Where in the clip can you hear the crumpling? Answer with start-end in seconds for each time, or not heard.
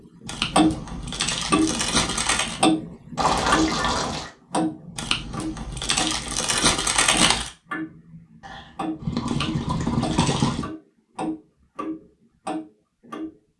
0.2-2.6, 5.0-7.5, 9.2-10.7.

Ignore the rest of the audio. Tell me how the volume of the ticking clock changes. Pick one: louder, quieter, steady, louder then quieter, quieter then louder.
quieter.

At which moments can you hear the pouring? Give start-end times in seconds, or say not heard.
3.1-4.3, 8.4-10.7.